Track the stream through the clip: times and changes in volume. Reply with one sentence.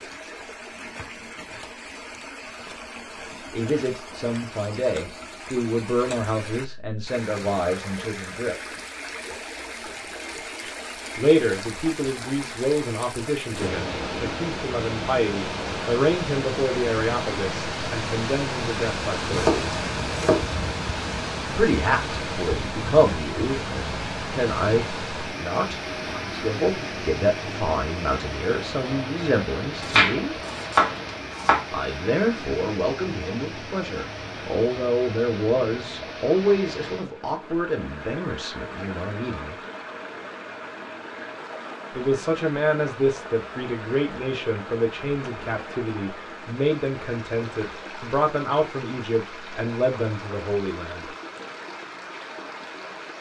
You can hear the stream from 0.0 to 53.1 s, getting louder then quieter.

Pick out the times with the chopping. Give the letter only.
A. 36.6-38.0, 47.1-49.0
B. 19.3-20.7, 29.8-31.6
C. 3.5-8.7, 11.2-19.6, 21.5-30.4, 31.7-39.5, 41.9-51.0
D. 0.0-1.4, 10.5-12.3
B.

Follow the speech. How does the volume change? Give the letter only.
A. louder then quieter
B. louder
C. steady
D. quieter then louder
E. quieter
C.